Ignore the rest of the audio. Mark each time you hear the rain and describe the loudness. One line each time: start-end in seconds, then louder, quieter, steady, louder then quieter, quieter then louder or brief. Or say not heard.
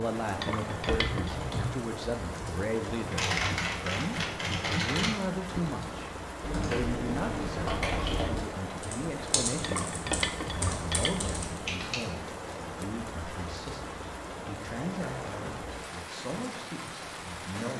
0.0-17.7 steady.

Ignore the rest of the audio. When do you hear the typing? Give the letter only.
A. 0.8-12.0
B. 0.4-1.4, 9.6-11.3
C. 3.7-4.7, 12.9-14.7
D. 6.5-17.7
A.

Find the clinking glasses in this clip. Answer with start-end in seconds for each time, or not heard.
0.4-1.4, 9.6-11.3.